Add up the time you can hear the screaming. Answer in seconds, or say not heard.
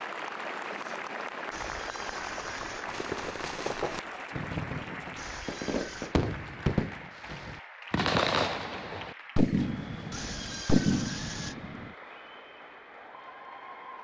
4 s.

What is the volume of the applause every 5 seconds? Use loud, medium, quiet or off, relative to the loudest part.
loud, medium, medium.